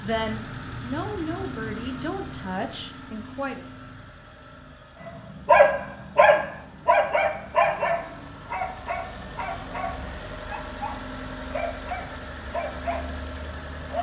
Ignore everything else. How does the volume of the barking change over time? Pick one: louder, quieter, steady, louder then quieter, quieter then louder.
quieter.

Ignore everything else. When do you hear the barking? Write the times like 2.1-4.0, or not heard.
5.0-13.9.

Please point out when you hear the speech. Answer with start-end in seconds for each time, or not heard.
0.0-3.6.